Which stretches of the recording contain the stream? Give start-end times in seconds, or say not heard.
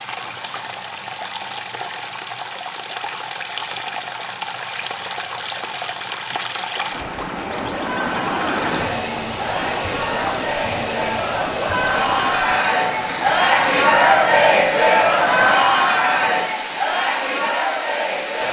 0.0-18.4.